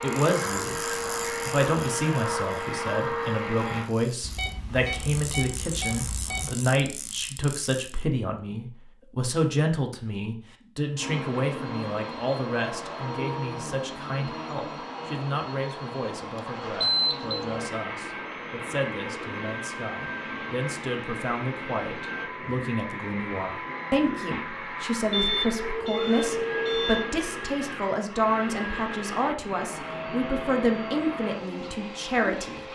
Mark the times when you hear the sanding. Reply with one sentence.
You can't hear the sanding here.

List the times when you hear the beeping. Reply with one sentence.
The beeping can be heard from 4.2 to 6.5 s, from 16.8 to 17.4 s and from 25.1 to 27.1 s.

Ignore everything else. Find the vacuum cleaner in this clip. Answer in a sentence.
The vacuum cleaner can be heard from 0.0 to 3.9 s and from 10.9 to 32.6 s.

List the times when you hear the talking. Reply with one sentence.
You can hear the talking from 0.0 to 0.8 s and from 1.4 to 32.6 s.